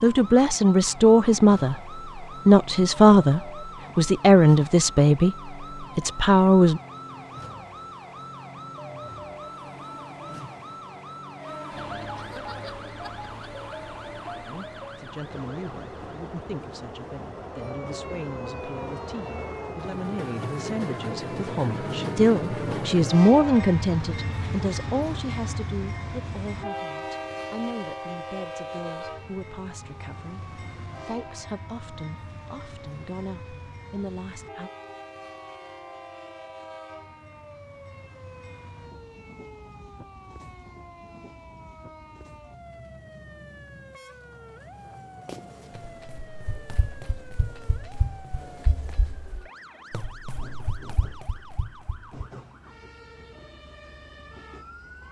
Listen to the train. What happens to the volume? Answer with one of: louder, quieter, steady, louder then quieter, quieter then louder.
louder then quieter.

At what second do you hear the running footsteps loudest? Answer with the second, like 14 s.
48 s.